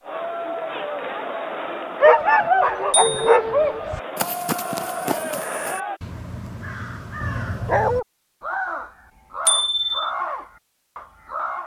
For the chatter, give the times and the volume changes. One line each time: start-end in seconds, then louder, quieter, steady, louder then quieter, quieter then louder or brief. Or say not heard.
0.0-6.0 quieter then louder.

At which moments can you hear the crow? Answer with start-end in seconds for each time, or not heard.
3.9-11.6.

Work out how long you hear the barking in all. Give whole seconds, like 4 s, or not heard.
2 s.